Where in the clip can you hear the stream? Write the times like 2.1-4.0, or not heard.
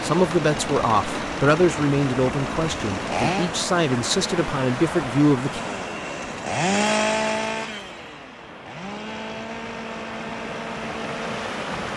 0.0-11.9.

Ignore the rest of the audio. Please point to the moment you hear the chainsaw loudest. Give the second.
7 s.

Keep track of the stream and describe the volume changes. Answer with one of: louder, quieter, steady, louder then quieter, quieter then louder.
quieter then louder.